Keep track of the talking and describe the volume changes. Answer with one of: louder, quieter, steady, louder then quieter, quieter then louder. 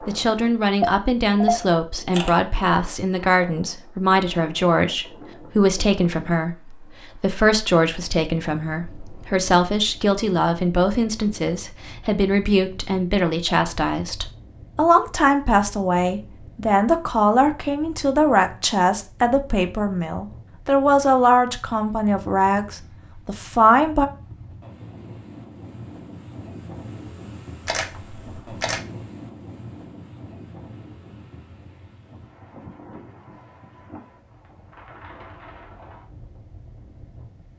steady.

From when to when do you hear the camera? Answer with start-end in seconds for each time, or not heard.
0.8-2.4, 27.6-28.8.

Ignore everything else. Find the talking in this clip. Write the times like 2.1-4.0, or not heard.
0.1-24.1.